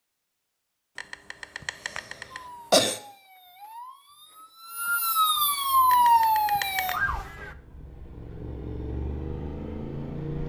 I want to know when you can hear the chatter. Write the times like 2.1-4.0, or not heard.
not heard.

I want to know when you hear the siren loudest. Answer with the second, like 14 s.
6 s.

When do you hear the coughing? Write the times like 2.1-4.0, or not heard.
0.9-3.0, 5.9-7.0.